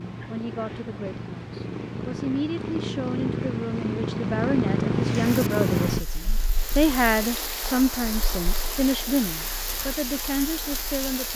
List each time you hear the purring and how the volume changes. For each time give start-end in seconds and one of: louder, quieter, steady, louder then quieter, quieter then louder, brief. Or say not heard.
0.0-11.2 louder then quieter.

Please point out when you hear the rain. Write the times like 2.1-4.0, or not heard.
5.0-11.3.